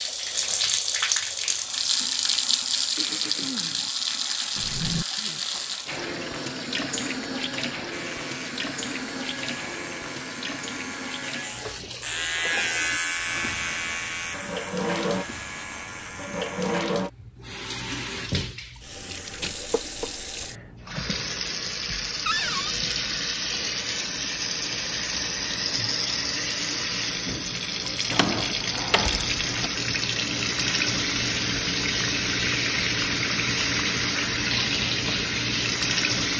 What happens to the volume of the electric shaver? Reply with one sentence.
The loudness of the electric shaver goes up, then down.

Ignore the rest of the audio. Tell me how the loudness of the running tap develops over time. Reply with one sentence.
The volume of the running tap goes down, then up.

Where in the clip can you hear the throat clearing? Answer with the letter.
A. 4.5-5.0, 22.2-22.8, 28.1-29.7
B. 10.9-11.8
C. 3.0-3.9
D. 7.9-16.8
C.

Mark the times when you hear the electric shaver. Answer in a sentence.
The electric shaver can be heard from 7.9 to 16.8 s.